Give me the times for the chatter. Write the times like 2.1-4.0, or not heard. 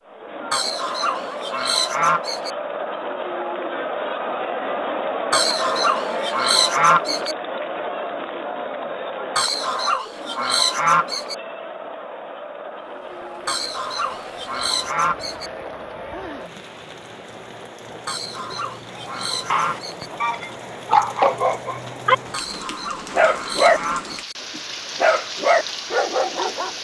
0.0-16.5.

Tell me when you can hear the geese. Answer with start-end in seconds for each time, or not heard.
0.5-2.5, 5.3-7.3, 9.3-11.3, 13.4-15.5, 18.1-20.1, 22.3-24.4.